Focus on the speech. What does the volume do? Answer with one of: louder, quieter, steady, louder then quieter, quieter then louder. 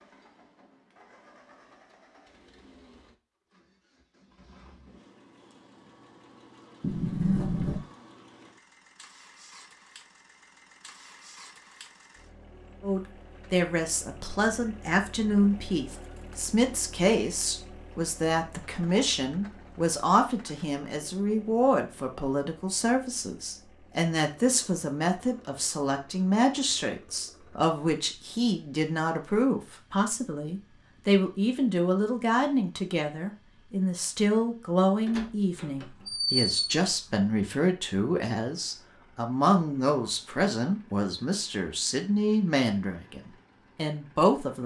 steady.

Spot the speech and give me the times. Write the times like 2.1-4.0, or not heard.
12.8-44.6.